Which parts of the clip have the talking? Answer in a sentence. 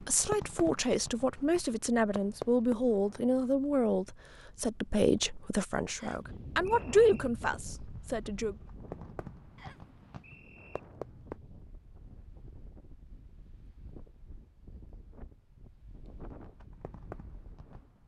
You can hear the talking from 0.0 to 8.6 s.